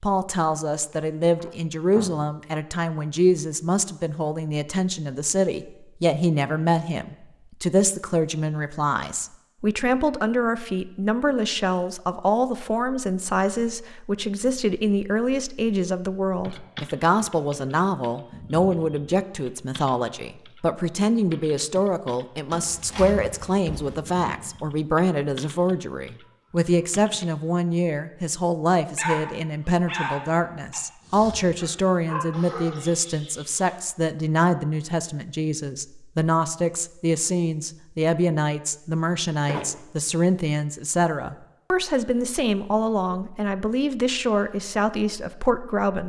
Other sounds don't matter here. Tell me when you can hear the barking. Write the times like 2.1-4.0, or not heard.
28.9-33.8.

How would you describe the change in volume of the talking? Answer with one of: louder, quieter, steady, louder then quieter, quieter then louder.
steady.